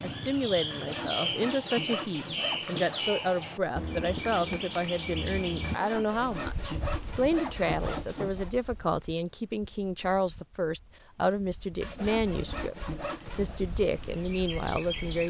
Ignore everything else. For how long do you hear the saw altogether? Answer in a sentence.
The saw can be heard for 7 seconds in total.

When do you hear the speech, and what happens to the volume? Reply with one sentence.
The speech can be heard from 0.0 to 15.2 s, at a steady volume.